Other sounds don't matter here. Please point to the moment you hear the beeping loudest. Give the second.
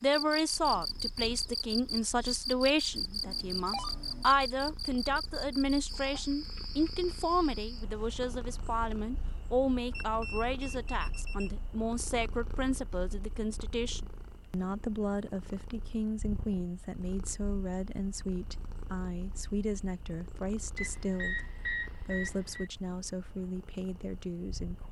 22 s.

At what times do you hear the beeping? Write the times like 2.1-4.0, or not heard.
3.2-4.2, 9.9-11.5, 20.8-22.7.